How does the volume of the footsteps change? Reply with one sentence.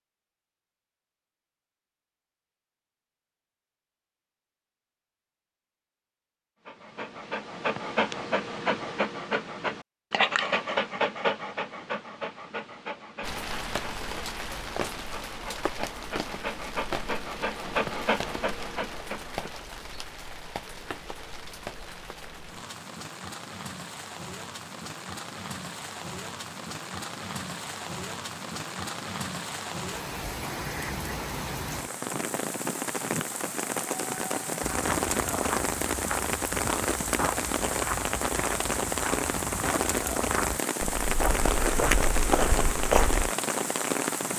The volume of the footsteps goes up.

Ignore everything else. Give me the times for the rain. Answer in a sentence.
You can hear the rain from 13.2 to 44.3 s.